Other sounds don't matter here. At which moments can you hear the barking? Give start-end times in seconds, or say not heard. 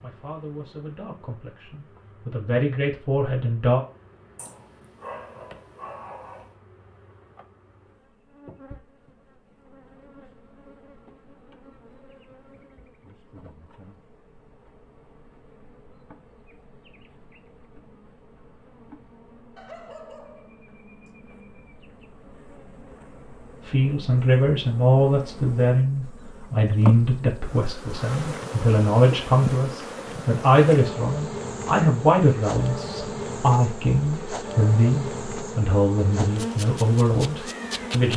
4.3-6.5, 19.6-21.1.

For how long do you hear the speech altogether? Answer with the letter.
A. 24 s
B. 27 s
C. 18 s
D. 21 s
C.